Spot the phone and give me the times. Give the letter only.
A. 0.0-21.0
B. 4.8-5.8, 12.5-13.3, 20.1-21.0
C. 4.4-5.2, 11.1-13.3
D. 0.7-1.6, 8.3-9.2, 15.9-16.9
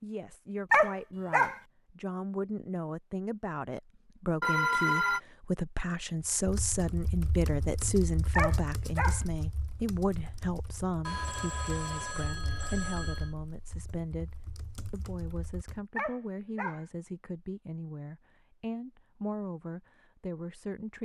C.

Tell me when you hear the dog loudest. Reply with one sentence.
The loudest moment of the dog is at 1 second.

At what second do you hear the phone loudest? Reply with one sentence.
The volume of the phone peaks at 5 seconds.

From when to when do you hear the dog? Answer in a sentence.
The dog can be heard from 0.7 to 1.6 s, from 8.3 to 9.2 s and from 15.9 to 16.9 s.